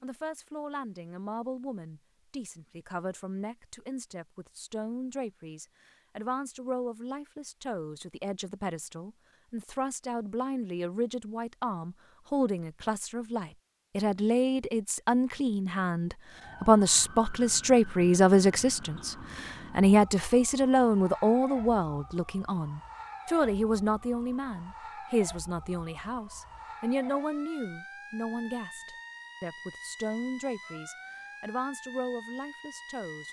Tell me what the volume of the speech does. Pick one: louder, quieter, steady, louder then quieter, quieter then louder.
louder then quieter.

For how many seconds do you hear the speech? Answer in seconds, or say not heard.
33 s.